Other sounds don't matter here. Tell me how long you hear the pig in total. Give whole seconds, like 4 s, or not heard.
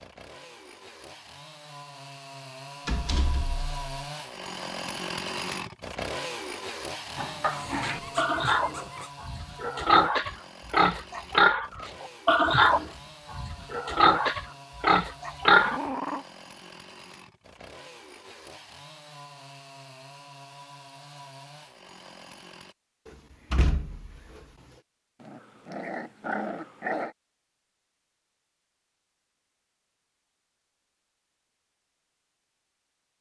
9 s.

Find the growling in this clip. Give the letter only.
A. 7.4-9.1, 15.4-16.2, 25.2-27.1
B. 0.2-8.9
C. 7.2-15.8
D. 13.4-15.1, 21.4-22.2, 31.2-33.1
A.